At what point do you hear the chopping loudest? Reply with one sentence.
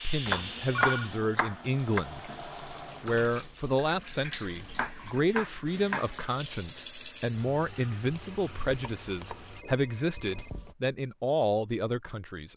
The volume of the chopping peaks at 1 second.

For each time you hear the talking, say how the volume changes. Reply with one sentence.
The talking can be heard briefly from 0.0 to 2.2 s; and from 2.9 to 12.5 s, at a steady volume.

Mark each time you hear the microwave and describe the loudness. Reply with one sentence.
The microwave can't be heard in this clip.